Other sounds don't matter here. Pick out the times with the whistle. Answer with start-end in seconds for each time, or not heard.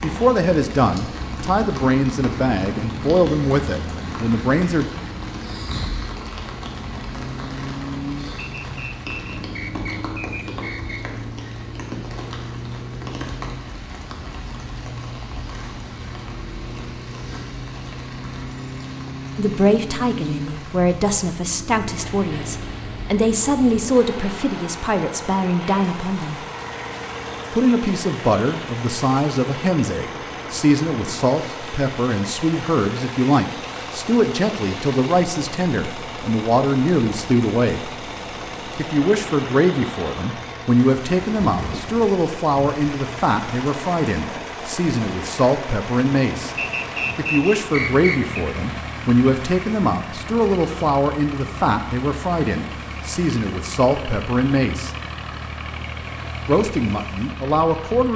8.3-11.0, 46.5-48.2.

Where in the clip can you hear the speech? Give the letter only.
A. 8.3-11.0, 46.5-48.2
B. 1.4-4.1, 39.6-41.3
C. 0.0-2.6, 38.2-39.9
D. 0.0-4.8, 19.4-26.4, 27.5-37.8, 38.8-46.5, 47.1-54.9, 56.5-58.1
D.